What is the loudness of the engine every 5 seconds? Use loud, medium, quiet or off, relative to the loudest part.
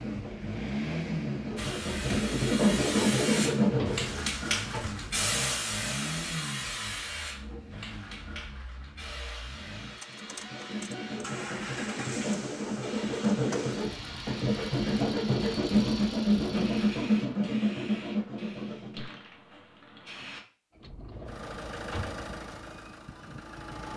loud, medium, medium, medium, medium.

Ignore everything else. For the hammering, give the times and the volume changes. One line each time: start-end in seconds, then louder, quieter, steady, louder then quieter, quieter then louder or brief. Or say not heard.
not heard.